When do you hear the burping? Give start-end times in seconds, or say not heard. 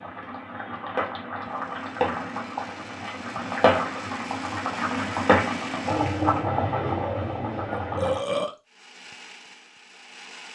8.0-8.6.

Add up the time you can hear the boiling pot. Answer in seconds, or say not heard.
8 s.